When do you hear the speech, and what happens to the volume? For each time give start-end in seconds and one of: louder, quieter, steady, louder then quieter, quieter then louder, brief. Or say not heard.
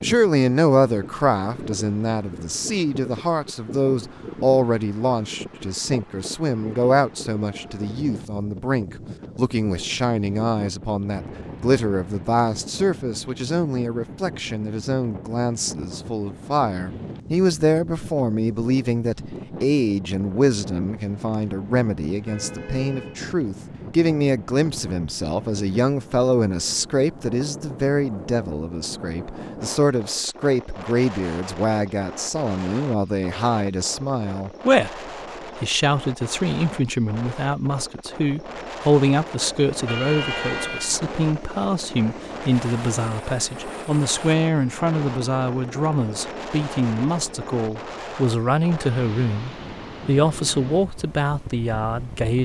0.0-52.3 steady.